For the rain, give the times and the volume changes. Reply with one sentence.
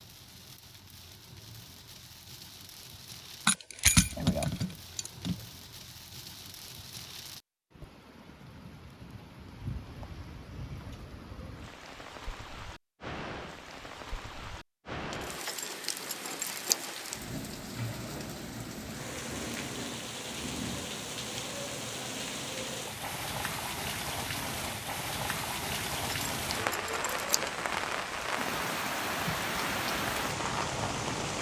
The rain can be heard from 0.0 to 31.3 s, getting louder.